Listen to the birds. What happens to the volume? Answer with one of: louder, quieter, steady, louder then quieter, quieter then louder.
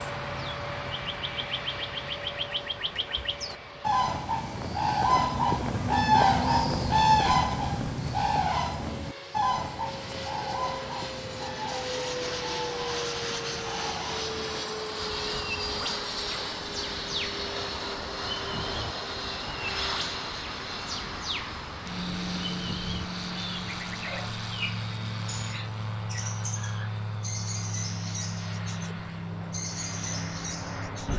quieter.